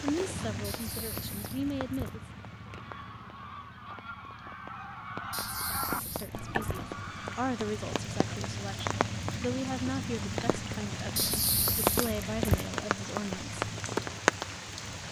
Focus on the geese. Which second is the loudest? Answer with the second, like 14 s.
6 s.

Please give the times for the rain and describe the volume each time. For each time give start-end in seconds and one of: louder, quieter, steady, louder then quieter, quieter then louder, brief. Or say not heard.
0.0-15.0 louder.